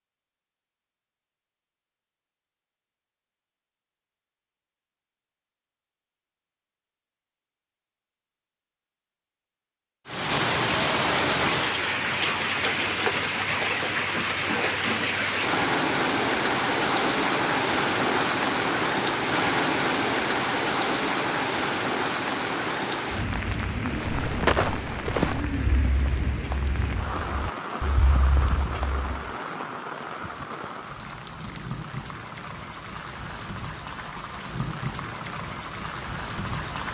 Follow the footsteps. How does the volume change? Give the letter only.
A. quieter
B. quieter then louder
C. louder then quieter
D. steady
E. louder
B.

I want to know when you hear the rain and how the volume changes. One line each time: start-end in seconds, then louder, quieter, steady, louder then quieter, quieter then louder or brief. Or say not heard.
10.1-36.8 quieter.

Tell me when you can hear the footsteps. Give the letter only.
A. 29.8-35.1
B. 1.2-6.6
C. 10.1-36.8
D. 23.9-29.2
D.